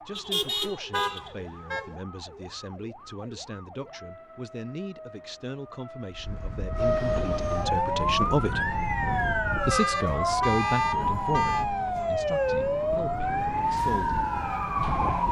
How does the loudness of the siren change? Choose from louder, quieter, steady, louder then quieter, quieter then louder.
louder.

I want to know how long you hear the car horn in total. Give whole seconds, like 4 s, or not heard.
4 s.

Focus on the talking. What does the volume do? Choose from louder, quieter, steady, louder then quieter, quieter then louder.
louder then quieter.